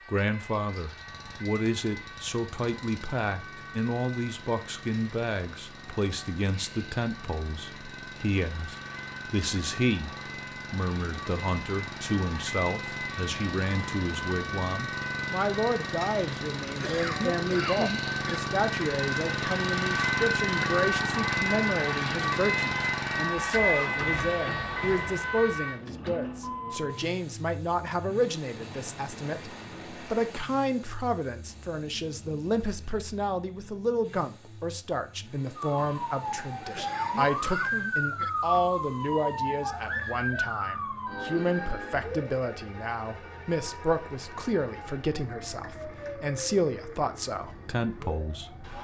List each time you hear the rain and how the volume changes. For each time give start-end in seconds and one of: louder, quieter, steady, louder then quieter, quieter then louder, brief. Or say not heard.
not heard.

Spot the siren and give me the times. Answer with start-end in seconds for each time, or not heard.
0.0-25.8, 35.5-48.7.